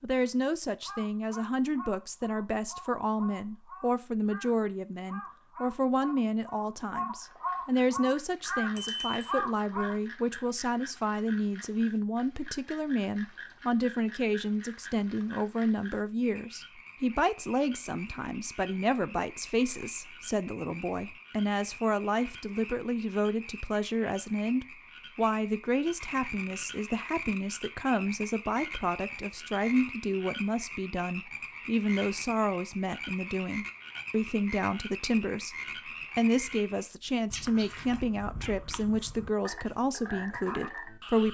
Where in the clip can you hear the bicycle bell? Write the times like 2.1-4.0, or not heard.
8.8-9.3.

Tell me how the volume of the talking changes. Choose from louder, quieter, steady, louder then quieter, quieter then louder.
steady.